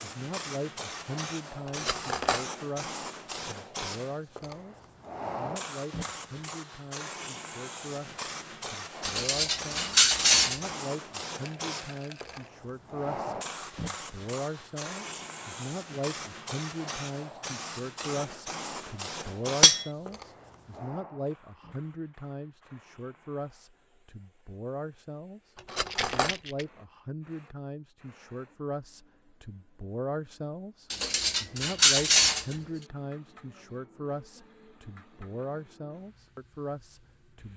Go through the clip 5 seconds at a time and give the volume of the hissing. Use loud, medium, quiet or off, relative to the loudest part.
loud, loud, loud, loud, quiet, quiet, quiet, quiet.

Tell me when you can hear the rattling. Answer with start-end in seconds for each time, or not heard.
11.4-12.5, 25.9-26.6.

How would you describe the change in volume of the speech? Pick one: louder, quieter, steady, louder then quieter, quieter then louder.
steady.